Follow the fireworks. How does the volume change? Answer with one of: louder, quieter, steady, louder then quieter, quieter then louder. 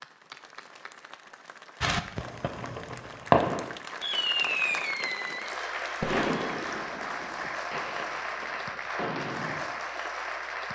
quieter.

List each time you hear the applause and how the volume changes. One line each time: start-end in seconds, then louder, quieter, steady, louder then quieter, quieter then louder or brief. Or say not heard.
0.0-10.7 louder.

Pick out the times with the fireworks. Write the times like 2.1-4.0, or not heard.
1.8-9.7.